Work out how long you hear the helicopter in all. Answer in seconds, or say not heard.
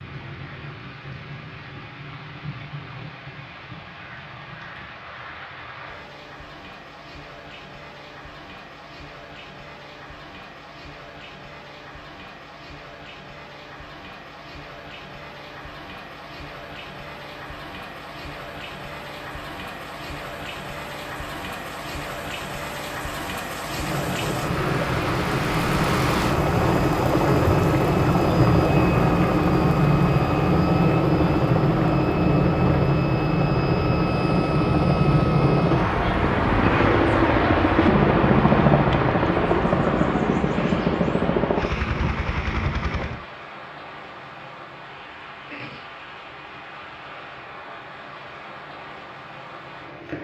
20 s.